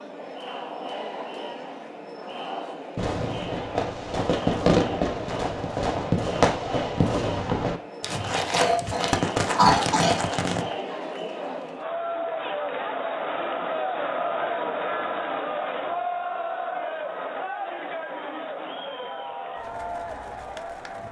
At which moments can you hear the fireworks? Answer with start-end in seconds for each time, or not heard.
3.0-10.7.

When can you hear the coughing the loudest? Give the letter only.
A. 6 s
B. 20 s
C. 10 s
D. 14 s
C.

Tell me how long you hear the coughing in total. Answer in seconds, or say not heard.
2 s.